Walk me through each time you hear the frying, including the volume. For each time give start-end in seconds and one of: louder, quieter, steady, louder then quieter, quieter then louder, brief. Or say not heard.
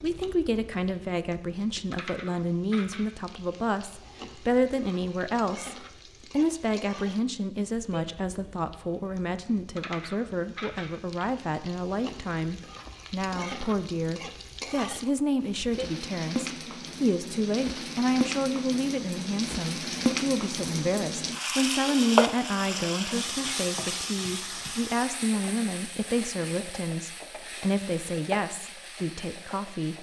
0.0-29.9 louder then quieter.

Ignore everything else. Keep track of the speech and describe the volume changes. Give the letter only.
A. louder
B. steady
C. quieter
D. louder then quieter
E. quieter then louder
B.